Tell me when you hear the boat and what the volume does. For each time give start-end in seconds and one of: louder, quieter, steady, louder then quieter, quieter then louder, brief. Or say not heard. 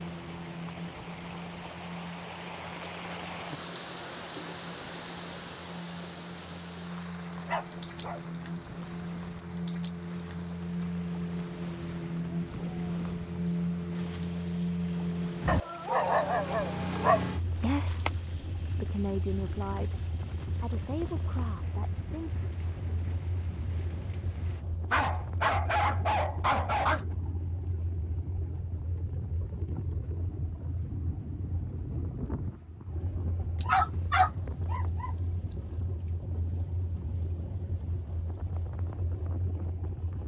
0.0-40.2 louder then quieter.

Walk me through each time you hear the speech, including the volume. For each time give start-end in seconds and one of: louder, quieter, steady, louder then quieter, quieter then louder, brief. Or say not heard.
17.6-22.3 louder then quieter.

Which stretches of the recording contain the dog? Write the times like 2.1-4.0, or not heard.
7.5-8.2, 15.4-18.1, 24.9-27.1, 33.6-35.5.